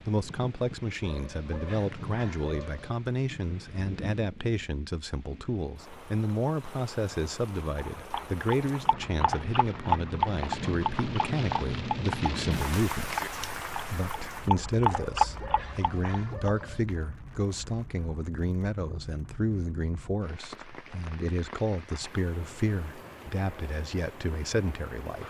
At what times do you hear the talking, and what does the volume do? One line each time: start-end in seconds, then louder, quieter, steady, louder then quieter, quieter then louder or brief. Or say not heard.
0.1-13.2 steady
13.9-25.2 steady.